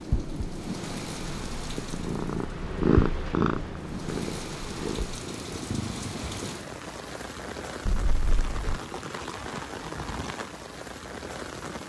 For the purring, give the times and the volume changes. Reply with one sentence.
The purring can be heard from 0.0 to 6.5 s, getting louder then quieter.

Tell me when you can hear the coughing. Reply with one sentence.
You can hear the coughing from 7.8 to 8.8 s.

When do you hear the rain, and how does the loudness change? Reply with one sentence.
You can hear the rain from 0.0 to 11.8 s, at a steady volume.